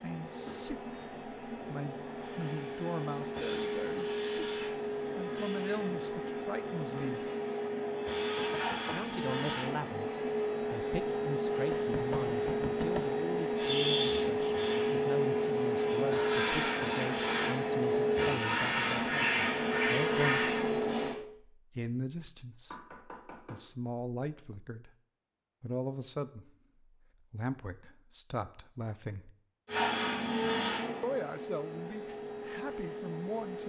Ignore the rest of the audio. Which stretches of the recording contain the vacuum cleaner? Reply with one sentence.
The vacuum cleaner can be heard from 0.0 to 21.1 s and from 29.6 to 33.6 s.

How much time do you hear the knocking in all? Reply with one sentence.
The knocking can be heard for 3 seconds in total.